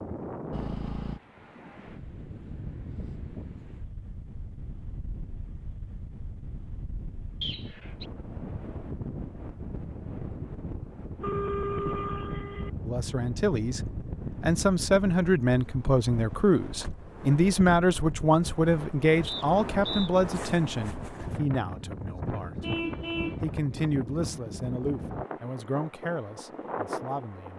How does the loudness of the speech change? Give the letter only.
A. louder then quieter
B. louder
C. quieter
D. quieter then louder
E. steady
C.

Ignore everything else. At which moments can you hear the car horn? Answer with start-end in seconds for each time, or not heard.
0.5-1.2, 11.2-12.7, 22.6-23.4.